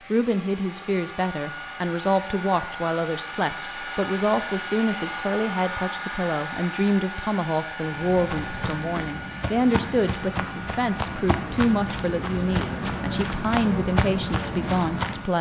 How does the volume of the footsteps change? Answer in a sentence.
The volume of the footsteps goes up.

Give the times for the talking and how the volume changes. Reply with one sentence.
The talking can be heard from 0.1 to 15.3 s, at a steady volume.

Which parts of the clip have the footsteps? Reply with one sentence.
The footsteps can be heard from 7.8 to 15.3 s.